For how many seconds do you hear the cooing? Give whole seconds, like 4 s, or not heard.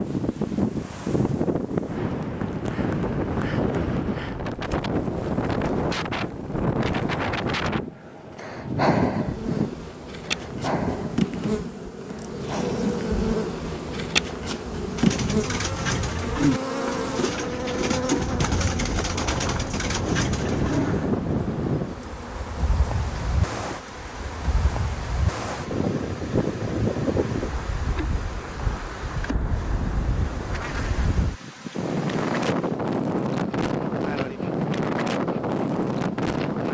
6 s.